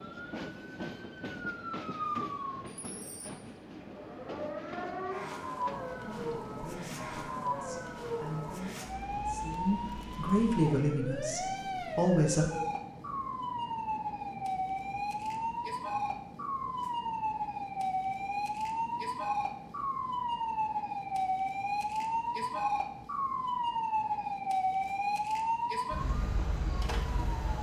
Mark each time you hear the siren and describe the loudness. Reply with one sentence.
You can hear the siren from 0.0 to 27.5 s, getting louder.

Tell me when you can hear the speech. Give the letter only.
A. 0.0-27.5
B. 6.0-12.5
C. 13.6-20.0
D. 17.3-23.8
B.